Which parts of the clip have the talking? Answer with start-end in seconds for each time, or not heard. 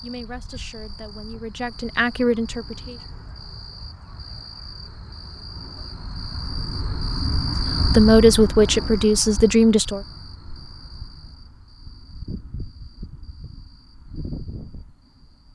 0.0-3.0, 7.8-10.0.